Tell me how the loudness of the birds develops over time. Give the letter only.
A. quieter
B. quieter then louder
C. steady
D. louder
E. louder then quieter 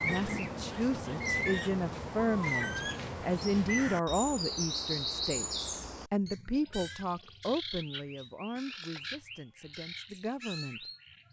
A.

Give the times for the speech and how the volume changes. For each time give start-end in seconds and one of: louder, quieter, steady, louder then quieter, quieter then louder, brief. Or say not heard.
0.0-10.8 quieter.